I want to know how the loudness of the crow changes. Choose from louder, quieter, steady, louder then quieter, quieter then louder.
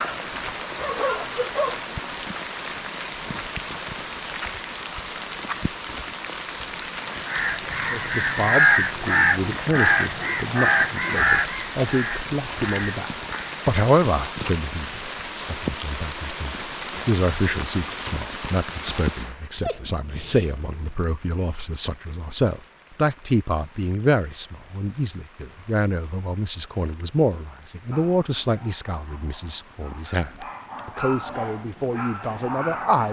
quieter.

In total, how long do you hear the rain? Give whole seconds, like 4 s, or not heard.
33 s.